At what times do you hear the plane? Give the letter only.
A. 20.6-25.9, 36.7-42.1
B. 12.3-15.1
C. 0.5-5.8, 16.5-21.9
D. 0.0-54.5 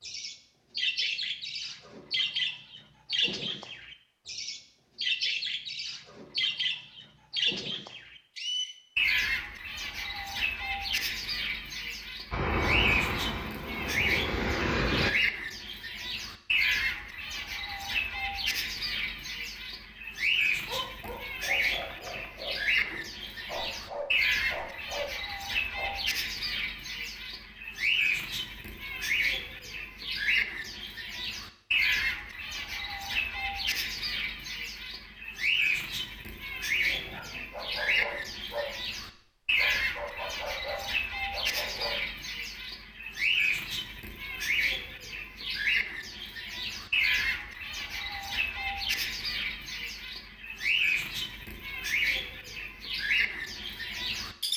B.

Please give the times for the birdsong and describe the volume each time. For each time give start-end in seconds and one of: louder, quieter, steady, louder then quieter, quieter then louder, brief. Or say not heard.
0.0-54.5 steady.